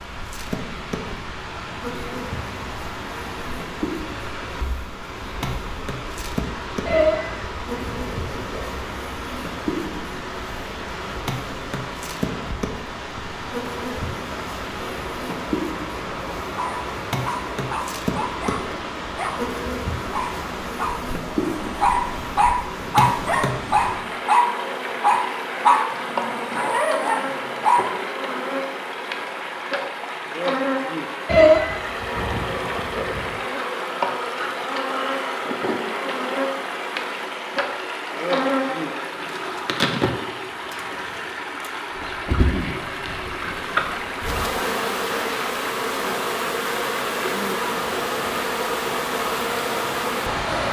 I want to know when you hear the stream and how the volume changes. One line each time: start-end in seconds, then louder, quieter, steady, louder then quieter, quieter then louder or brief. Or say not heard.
0.0-50.6 steady.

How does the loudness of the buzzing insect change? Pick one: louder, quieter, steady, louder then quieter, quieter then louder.
louder.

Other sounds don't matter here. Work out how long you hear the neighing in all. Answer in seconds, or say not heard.
4 s.